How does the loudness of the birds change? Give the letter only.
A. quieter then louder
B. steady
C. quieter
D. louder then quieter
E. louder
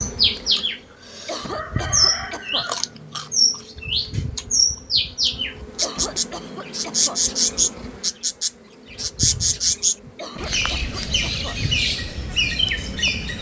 B.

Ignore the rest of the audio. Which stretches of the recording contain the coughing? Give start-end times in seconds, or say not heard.
1.2-2.6, 5.8-7.2, 10.2-11.6.